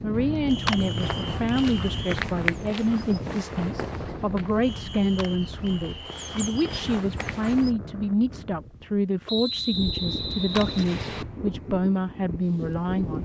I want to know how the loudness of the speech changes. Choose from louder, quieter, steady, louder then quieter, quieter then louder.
steady.